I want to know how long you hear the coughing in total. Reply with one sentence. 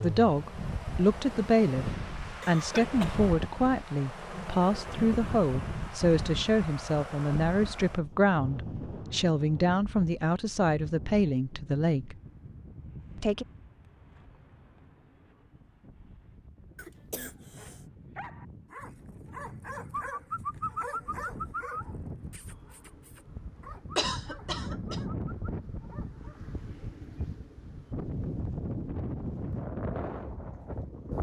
You can hear the coughing for 3 seconds altogether.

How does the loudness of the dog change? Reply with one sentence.
The loudness of the dog goes up, then down.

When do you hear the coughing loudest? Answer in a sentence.
The volume of the coughing peaks at 24 seconds.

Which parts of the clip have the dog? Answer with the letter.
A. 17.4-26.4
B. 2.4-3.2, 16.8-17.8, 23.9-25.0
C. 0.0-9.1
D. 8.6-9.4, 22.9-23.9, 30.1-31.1
A.